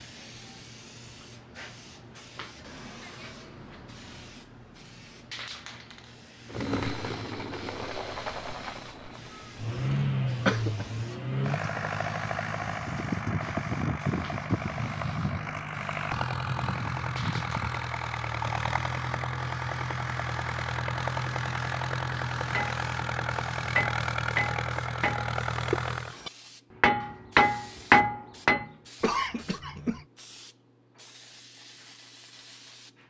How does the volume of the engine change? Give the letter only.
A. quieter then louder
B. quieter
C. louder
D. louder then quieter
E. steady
E.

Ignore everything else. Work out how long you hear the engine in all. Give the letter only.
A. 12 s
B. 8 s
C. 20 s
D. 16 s
C.